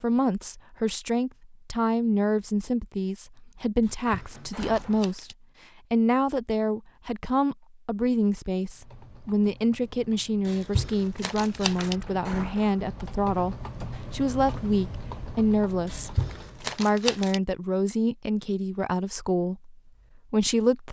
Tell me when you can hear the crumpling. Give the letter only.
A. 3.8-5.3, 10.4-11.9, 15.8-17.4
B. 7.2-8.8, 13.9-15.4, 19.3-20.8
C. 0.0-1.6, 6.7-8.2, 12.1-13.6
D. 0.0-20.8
A.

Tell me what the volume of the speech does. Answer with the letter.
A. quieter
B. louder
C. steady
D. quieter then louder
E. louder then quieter
C.